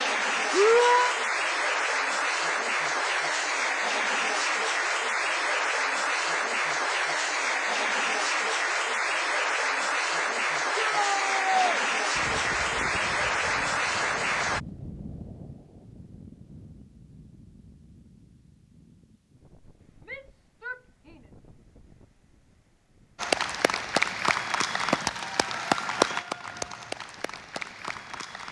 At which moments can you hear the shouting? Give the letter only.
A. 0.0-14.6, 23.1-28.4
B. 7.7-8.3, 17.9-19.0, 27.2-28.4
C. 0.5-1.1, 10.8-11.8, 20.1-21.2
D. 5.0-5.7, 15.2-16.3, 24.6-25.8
C.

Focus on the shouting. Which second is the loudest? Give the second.
1 s.